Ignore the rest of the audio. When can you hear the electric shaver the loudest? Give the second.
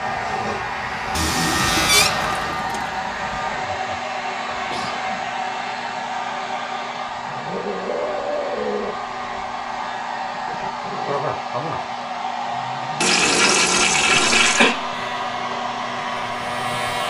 2 s.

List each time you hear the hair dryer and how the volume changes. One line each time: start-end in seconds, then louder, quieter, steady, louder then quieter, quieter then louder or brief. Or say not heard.
0.0-17.0 steady.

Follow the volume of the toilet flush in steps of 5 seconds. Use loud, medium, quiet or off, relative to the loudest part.
medium, off, loud, off.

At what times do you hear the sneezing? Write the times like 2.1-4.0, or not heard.
4.5-5.3, 14.1-14.8.